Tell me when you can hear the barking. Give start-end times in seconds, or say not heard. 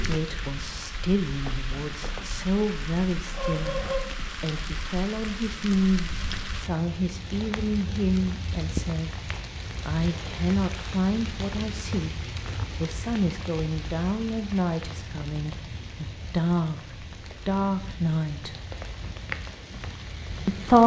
not heard.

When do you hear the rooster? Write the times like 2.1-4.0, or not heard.
3.3-4.0.